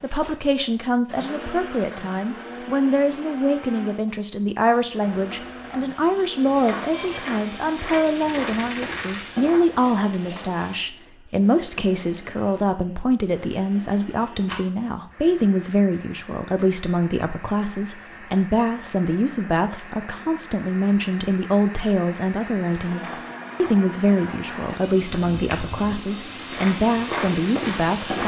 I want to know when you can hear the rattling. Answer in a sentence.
You can hear the rattling from 8.2 to 9.3 s and from 14.4 to 14.8 s.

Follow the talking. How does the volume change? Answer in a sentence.
The volume of the talking stays about the same.